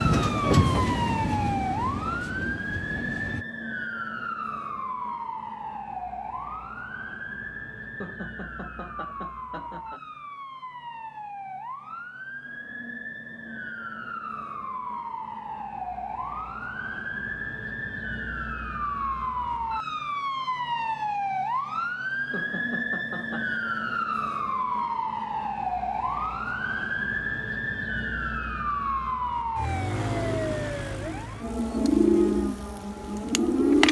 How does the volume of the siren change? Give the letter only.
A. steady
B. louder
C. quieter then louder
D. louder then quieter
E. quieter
C.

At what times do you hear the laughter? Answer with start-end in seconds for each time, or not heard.
8.0-10.0, 22.3-23.6.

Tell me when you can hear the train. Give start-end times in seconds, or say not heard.
0.0-3.5.